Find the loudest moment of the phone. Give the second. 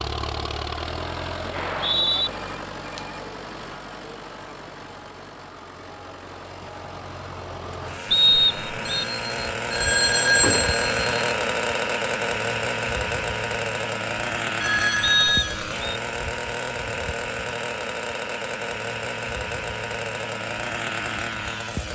10 s.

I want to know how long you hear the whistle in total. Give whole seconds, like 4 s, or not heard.
3 s.